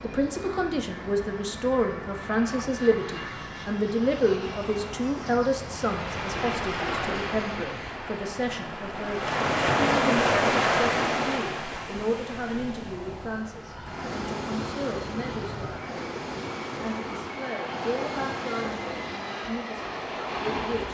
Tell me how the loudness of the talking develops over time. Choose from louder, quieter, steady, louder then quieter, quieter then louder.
quieter.